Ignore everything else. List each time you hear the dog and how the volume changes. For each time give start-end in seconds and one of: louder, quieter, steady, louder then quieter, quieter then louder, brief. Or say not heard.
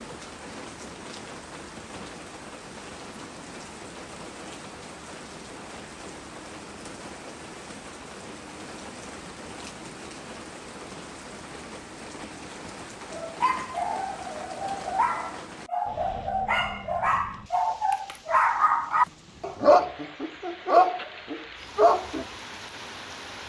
13.1-22.2 louder.